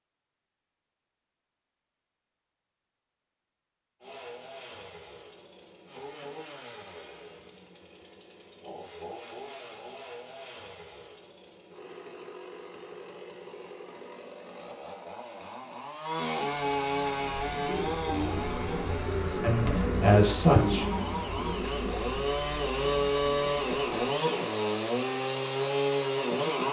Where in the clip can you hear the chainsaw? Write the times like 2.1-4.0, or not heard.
4.0-26.6.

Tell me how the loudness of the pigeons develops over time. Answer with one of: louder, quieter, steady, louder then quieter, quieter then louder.
louder then quieter.